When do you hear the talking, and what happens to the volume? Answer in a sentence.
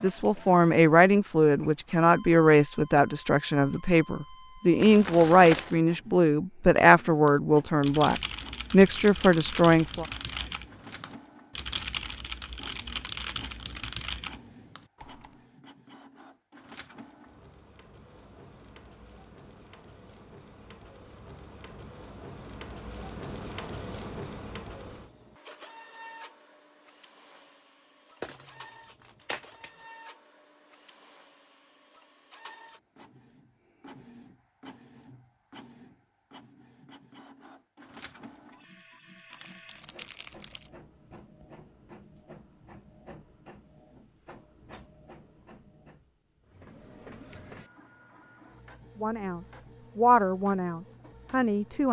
The talking can be heard from 0.0 to 10.1 s, at a steady volume; and briefly from 49.0 to 51.8 s.